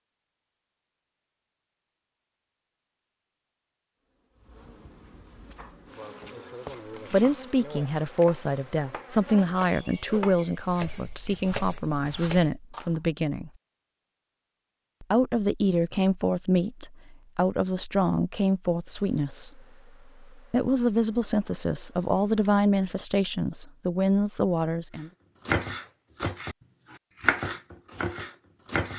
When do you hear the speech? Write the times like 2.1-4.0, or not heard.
7.1-13.5, 15.0-19.6, 20.4-25.1.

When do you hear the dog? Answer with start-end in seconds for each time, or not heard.
not heard.